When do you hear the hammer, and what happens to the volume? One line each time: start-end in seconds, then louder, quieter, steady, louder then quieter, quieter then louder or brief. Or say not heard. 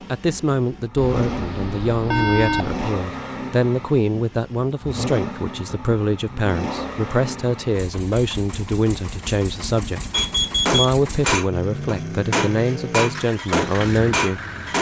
10.1-14.7 steady.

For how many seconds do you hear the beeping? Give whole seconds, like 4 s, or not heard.
3 s.